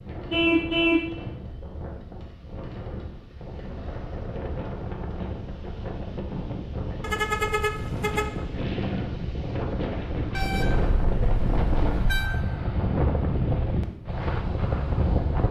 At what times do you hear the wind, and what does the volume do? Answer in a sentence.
The wind can be heard from 0.0 to 15.4 s, getting louder.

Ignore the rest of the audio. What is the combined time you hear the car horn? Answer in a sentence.
You can hear the car horn for 4 seconds altogether.